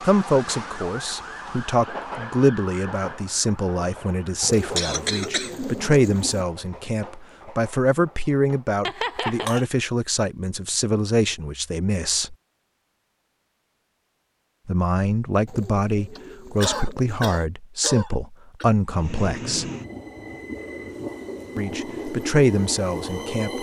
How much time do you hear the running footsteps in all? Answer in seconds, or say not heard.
not heard.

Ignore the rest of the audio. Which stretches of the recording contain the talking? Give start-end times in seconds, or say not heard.
0.1-12.3, 14.7-19.6, 21.6-23.5.